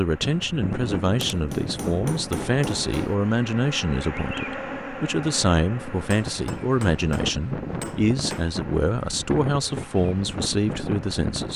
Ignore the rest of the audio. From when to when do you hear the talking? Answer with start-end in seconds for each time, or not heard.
0.0-11.5.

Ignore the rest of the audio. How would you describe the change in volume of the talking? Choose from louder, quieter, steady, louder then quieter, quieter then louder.
steady.